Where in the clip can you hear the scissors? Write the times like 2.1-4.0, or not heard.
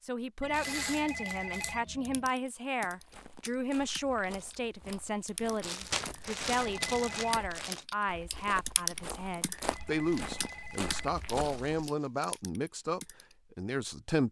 not heard.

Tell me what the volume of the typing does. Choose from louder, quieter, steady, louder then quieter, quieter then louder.
louder then quieter.